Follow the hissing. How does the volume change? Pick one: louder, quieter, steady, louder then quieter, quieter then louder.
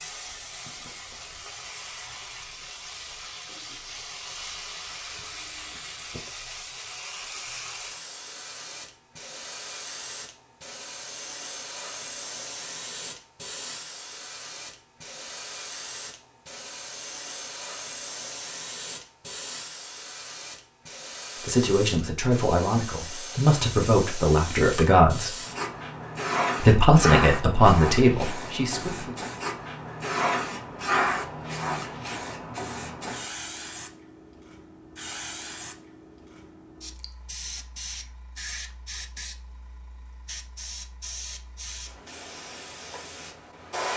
louder then quieter.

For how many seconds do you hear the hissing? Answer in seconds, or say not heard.
44 s.